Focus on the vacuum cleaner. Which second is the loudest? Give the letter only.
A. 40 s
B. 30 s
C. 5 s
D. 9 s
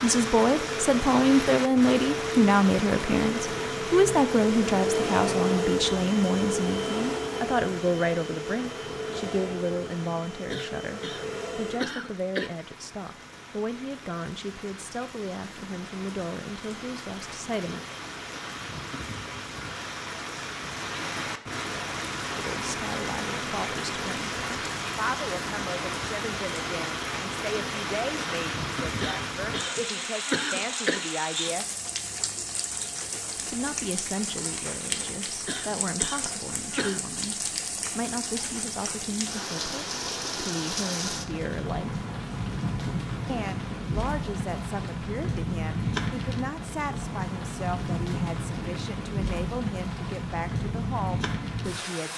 C.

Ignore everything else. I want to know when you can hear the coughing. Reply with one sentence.
The coughing can be heard from 10.5 to 12.5 s, from 29.0 to 31.0 s and from 35.5 to 37.0 s.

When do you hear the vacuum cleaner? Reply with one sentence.
The vacuum cleaner can be heard from 0.1 to 11.9 s.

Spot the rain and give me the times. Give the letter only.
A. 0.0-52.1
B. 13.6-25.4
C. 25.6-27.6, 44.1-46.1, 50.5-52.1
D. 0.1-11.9
A.